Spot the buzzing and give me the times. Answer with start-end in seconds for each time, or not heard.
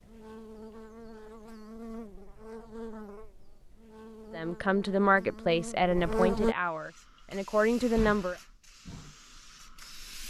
0.0-6.5.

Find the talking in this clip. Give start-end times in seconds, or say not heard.
4.3-8.3.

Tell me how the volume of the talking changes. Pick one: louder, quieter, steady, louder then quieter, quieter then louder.
quieter then louder.